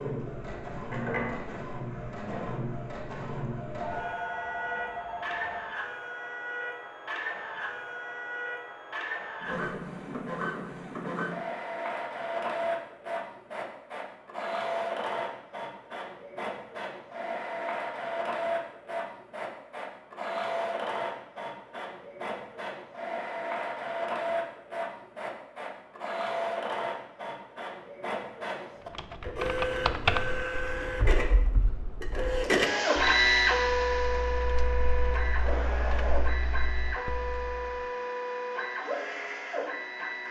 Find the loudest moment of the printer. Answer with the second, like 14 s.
33 s.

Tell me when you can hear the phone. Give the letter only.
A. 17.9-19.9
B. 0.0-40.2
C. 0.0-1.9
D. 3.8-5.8
D.